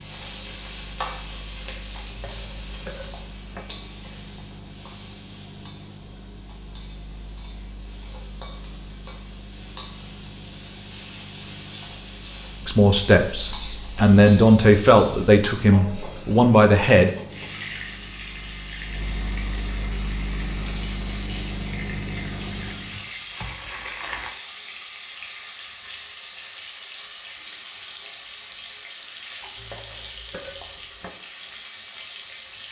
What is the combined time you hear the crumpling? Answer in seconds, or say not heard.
2 s.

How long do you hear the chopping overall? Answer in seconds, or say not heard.
not heard.